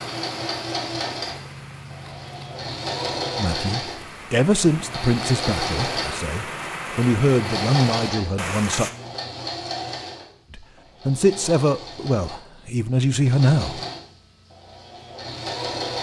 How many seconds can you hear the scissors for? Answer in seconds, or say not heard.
2 s.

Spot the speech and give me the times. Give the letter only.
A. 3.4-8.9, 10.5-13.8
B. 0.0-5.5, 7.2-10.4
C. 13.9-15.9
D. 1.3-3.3
A.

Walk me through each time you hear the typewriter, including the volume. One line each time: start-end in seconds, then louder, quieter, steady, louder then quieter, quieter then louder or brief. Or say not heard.
not heard.